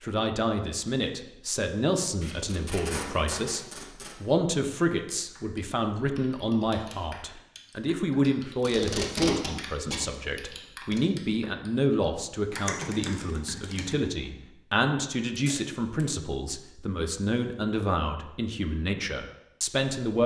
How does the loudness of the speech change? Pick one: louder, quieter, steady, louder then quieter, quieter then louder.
steady.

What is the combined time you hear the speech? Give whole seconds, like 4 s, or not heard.
20 s.